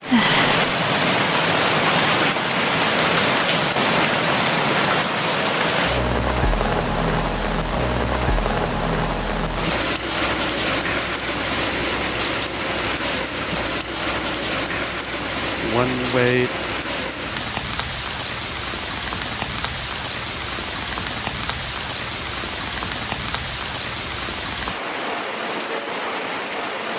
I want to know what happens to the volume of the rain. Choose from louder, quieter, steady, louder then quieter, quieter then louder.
quieter.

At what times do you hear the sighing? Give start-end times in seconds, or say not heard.
0.1-0.5, 15.6-16.5.